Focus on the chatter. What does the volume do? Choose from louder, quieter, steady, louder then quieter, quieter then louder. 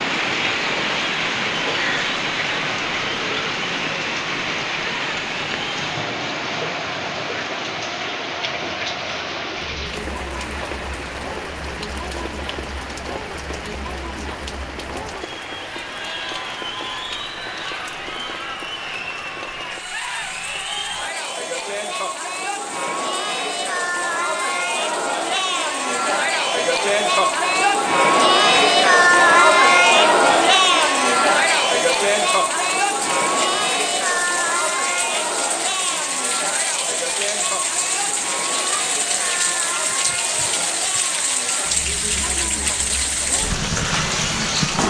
louder then quieter.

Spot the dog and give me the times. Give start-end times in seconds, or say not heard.
not heard.